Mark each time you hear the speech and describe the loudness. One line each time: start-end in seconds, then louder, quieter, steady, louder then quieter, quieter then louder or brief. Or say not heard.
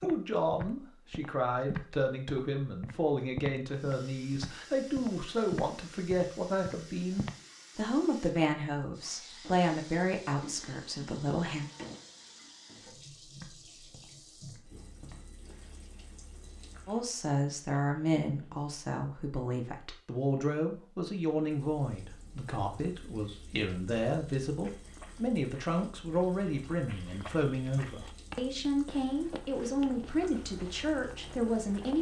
0.0-11.7 steady
16.9-31.9 steady.